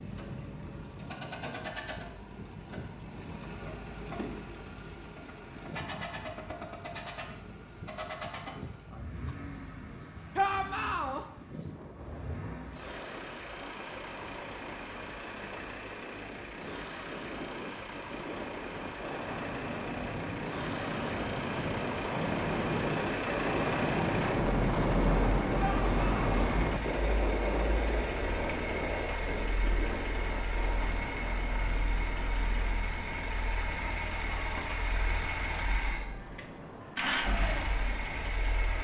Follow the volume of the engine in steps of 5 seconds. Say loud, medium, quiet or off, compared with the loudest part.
medium, medium, medium, medium, loud, loud, loud, loud.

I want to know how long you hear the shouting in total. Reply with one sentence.
You can hear the shouting for 2 seconds altogether.